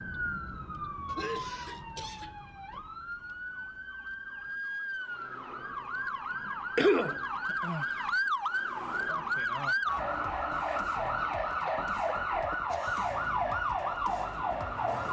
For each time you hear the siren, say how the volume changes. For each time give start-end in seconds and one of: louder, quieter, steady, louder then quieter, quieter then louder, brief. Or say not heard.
0.0-15.0 louder.